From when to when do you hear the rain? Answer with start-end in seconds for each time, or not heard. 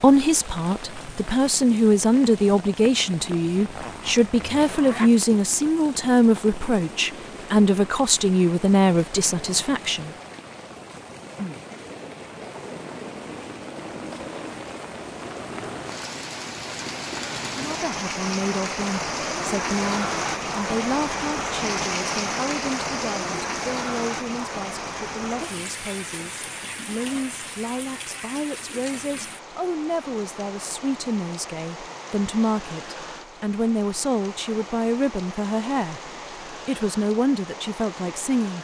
0.0-38.5.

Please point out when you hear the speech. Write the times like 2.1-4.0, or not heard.
0.0-10.1, 17.5-38.5.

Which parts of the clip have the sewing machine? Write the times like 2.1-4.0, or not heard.
not heard.